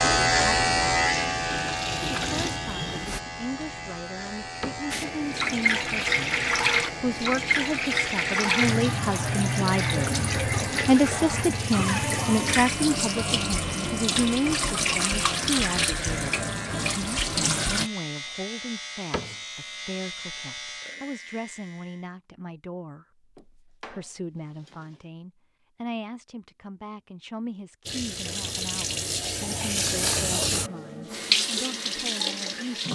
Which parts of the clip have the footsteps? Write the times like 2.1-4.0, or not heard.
not heard.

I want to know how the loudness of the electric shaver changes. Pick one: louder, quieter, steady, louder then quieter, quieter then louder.
quieter.